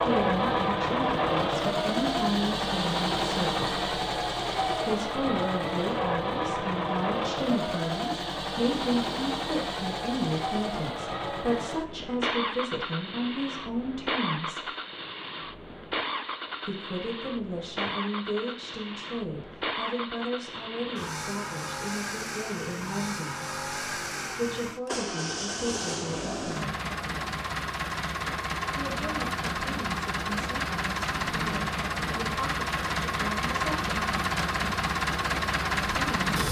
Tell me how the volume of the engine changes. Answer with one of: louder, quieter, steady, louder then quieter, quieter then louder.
quieter then louder.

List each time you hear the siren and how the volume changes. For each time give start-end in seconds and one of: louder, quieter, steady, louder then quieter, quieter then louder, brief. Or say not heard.
not heard.